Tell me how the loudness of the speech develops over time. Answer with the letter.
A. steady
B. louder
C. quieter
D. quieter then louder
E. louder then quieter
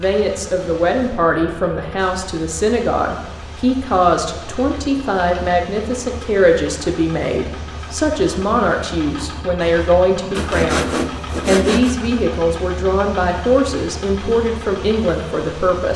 A.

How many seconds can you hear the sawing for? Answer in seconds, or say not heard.
2 s.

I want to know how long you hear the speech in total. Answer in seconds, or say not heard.
16 s.